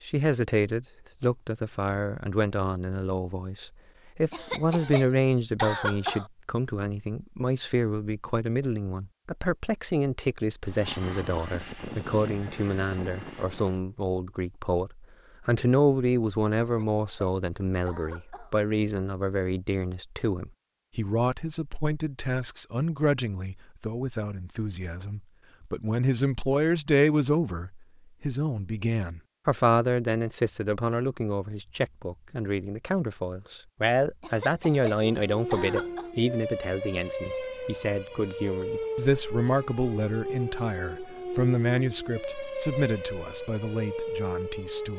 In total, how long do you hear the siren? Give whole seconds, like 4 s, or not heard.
10 s.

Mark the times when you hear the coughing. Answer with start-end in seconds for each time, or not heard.
4.3-6.3, 16.6-18.6, 34.2-36.1.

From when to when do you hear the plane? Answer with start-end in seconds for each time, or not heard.
10.7-13.8.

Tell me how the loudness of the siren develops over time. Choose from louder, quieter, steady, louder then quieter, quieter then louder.
steady.